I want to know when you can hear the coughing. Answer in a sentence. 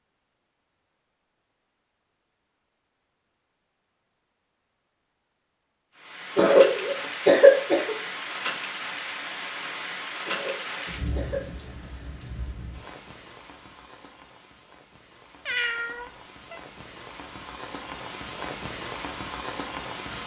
You can hear the coughing from 6.3 to 8.0 s and from 10.2 to 11.4 s.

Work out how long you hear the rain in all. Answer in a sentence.
You can hear the rain for 14 seconds altogether.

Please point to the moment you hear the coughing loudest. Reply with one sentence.
The volume of the coughing peaks at 7 seconds.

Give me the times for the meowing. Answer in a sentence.
The meowing can be heard from 15.4 to 16.6 s.